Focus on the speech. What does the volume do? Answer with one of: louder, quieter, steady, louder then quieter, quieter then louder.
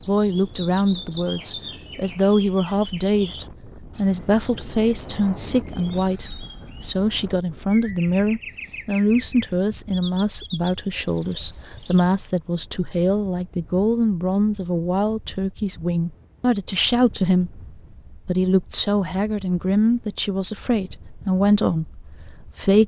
steady.